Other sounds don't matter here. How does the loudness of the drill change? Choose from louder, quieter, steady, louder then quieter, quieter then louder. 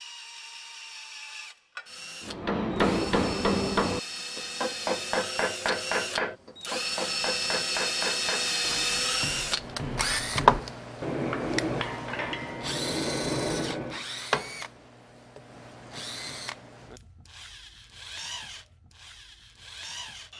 louder then quieter.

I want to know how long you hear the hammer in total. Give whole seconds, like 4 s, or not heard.
12 s.